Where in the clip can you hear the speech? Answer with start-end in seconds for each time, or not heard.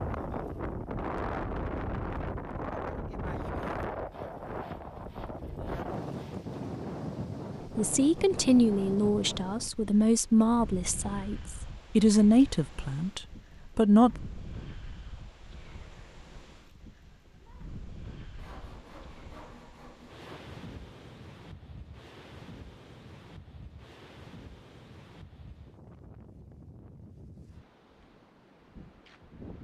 7.8-14.1.